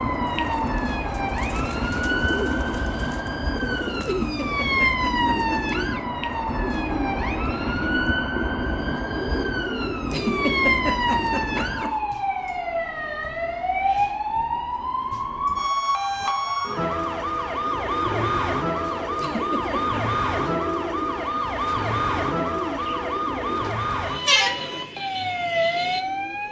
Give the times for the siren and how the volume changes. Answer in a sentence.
You can hear the siren from 0.0 to 26.4 s, at a steady volume.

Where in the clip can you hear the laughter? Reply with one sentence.
The laughter can be heard from 4.0 to 5.6 s, from 10.1 to 11.9 s and from 19.1 to 20.1 s.